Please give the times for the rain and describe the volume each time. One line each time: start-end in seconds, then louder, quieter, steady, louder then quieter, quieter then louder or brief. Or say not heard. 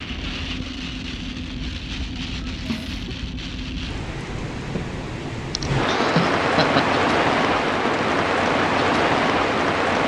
0.0-10.0 louder.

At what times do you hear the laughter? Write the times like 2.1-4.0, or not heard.
2.0-3.0, 5.5-6.9.